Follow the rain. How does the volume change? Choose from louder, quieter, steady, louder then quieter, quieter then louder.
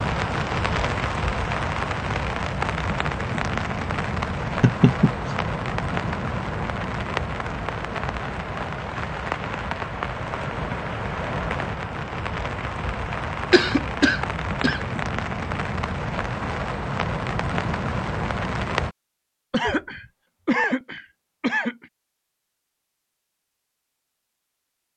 steady.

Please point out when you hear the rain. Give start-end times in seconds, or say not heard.
0.0-18.9.